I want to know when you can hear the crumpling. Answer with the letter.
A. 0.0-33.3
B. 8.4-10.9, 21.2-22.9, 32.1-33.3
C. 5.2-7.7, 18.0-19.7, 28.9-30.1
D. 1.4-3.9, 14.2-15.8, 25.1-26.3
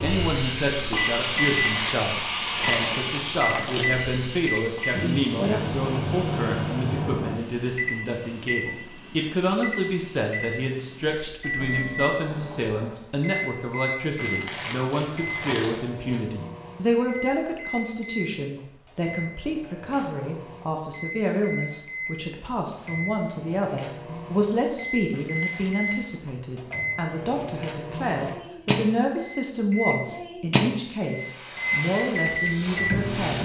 D.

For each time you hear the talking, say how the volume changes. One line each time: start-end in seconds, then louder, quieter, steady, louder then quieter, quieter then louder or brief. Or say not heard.
0.0-33.3 steady.